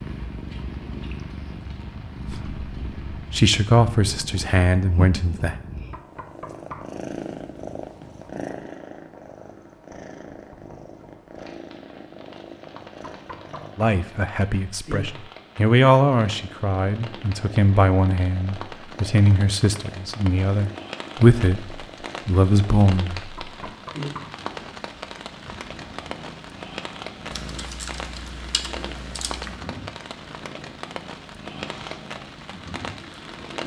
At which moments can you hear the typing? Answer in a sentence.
You can hear the typing from 27.3 to 29.6 s.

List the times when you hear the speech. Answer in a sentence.
You can hear the speech from 2.3 to 5.5 s and from 13.8 to 23.2 s.